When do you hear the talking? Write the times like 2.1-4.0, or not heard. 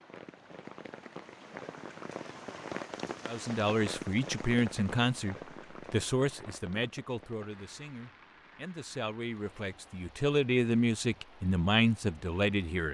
3.2-12.8.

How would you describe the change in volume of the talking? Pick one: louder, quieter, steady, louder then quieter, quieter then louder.
quieter then louder.